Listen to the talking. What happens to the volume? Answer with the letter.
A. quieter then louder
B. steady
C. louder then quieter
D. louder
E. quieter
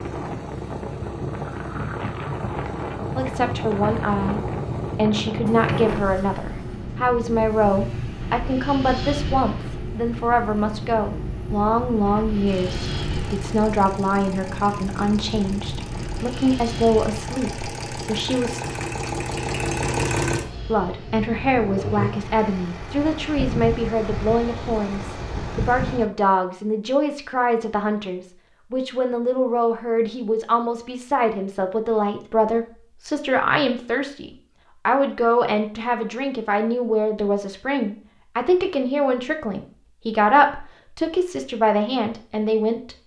B.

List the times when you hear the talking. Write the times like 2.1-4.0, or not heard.
3.1-18.6, 20.6-43.0.